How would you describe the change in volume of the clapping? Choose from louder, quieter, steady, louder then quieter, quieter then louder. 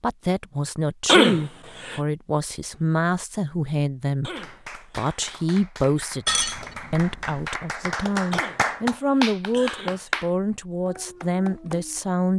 louder then quieter.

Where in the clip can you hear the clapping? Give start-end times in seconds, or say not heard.
4.3-12.1.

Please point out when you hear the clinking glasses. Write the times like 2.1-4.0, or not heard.
6.2-7.5.